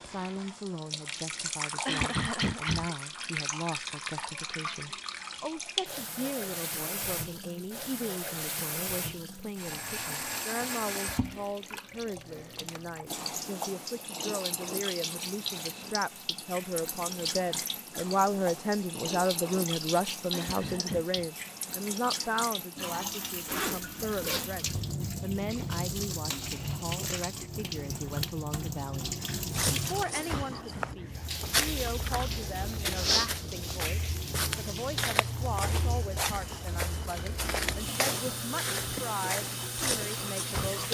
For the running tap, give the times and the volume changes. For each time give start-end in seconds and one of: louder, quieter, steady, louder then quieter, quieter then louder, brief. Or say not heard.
0.0-40.8 steady.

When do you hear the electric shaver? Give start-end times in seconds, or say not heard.
not heard.